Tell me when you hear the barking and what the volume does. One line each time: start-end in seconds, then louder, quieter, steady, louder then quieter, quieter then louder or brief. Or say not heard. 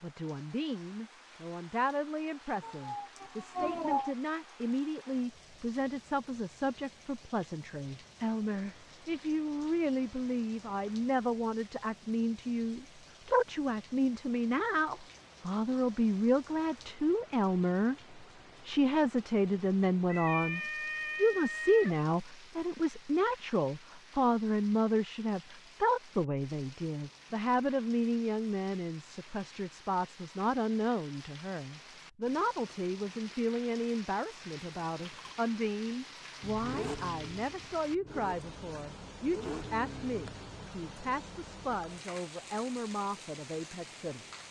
not heard.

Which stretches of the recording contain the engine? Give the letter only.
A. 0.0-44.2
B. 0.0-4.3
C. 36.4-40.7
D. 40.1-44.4
C.